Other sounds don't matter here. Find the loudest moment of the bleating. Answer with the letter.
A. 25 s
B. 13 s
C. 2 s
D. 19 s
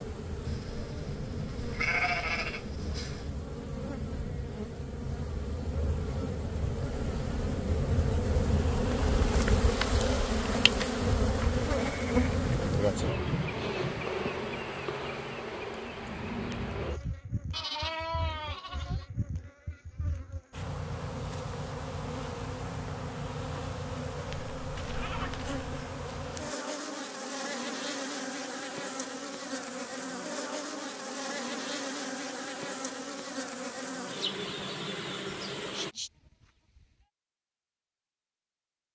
C.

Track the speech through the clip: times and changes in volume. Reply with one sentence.
You can't hear the speech here.